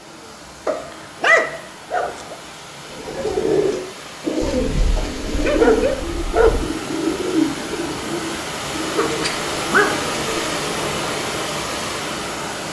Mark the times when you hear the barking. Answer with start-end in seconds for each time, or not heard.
0.7-2.4, 4.4-6.7, 8.9-10.1.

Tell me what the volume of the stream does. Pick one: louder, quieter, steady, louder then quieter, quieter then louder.
louder.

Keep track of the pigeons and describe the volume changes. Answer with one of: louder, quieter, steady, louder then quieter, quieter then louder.
quieter.